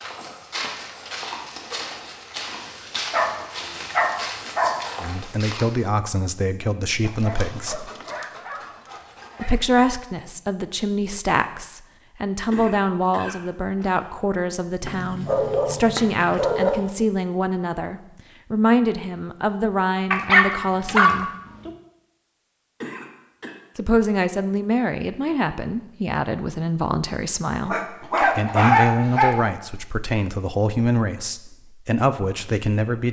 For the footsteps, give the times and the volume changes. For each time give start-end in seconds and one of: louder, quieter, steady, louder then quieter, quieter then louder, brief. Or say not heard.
0.0-5.7 steady.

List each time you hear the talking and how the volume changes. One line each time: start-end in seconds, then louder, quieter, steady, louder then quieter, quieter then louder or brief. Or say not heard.
5.0-7.9 brief
9.3-21.3 steady
23.8-33.0 steady.